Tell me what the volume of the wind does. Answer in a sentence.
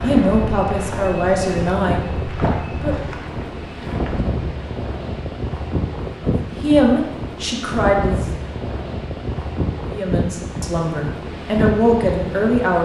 The volume of the wind stays about the same.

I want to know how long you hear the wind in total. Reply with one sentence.
The wind can be heard for 13 seconds in total.